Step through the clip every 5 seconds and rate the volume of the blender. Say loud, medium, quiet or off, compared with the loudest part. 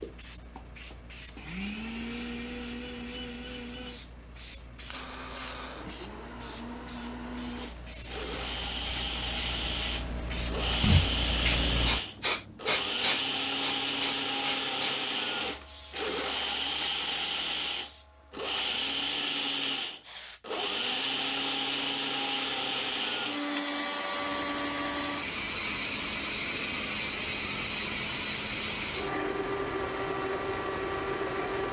medium, medium, loud, loud, loud, loud, loud.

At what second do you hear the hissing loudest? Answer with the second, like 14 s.
13 s.